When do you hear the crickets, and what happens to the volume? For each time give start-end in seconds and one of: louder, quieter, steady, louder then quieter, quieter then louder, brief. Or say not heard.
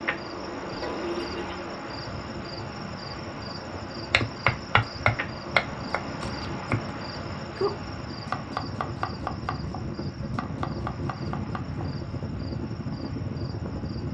0.0-14.0 quieter.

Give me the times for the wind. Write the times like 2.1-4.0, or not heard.
0.0-14.0.